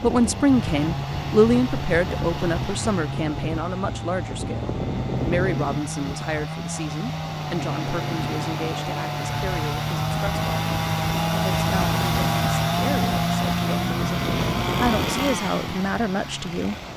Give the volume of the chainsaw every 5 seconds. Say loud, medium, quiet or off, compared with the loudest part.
medium, medium, loud, medium.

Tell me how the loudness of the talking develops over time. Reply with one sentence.
The volume of the talking goes down, then up.